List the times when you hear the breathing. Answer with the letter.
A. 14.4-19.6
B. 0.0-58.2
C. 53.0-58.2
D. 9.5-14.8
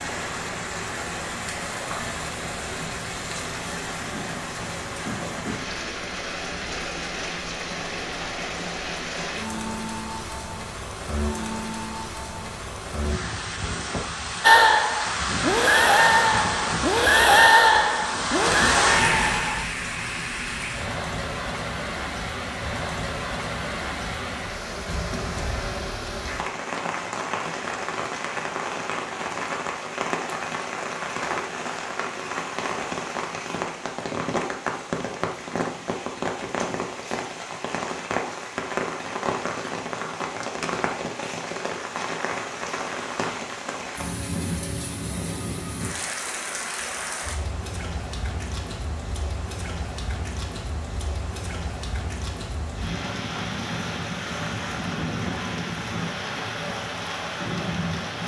A.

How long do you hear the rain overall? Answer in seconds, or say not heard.
58 s.